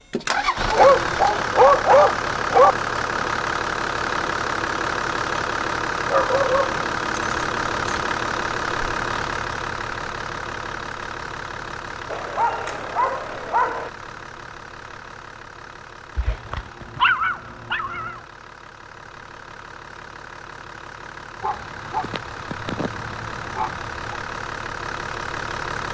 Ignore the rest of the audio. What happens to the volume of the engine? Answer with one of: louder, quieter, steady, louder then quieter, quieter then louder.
quieter then louder.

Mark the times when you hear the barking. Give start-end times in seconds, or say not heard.
0.7-2.8, 6.1-8.1, 12.1-13.9, 16.1-18.1, 21.4-24.1.